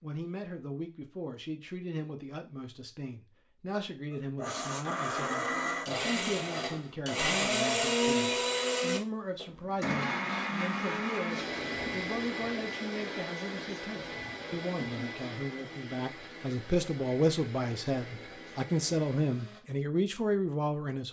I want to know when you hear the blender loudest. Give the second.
8 s.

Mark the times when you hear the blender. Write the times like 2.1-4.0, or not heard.
4.1-19.6.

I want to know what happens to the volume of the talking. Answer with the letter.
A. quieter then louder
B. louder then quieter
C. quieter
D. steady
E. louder
E.